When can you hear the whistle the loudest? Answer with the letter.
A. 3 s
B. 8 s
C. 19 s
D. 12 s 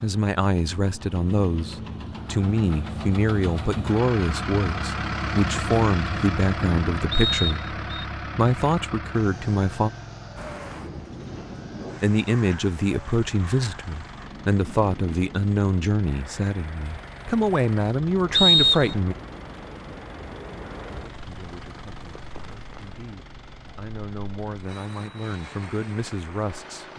C.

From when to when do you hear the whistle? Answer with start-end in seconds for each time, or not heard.
7.1-8.1, 18.3-19.0.